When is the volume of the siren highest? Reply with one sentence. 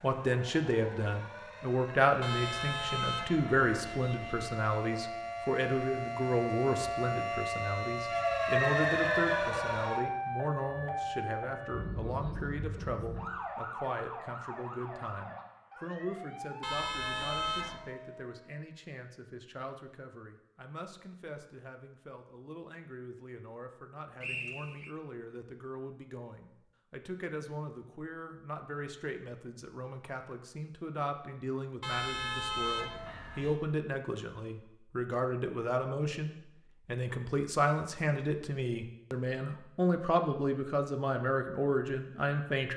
The volume of the siren peaks at 9 seconds.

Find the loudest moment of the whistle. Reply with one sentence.
The volume of the whistle peaks at 9 seconds.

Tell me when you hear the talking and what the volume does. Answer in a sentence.
You can hear the talking from 0.0 to 42.7 s, getting quieter then louder.